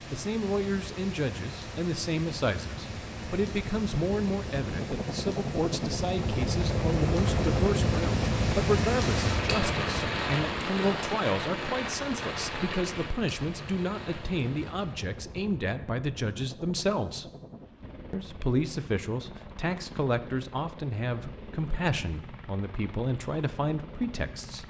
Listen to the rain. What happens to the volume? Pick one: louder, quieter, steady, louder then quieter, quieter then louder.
louder then quieter.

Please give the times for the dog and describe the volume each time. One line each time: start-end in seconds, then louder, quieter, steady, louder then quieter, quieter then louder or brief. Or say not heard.
not heard.